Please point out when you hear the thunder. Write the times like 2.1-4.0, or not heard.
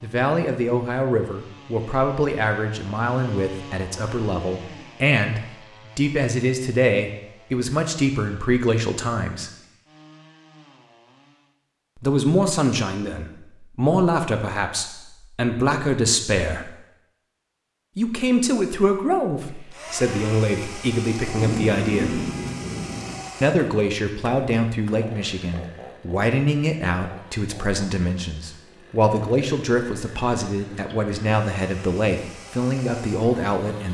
21.2-23.1.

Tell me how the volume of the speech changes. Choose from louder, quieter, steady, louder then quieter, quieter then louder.
steady.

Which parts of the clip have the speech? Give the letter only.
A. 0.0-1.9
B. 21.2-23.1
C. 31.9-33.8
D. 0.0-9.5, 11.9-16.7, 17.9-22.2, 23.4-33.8
D.